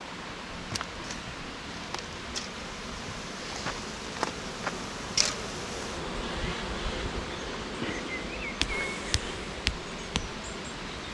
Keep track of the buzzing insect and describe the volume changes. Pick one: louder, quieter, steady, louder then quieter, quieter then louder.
louder.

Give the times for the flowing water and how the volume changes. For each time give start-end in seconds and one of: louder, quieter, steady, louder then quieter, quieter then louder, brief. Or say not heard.
0.0-11.0 steady.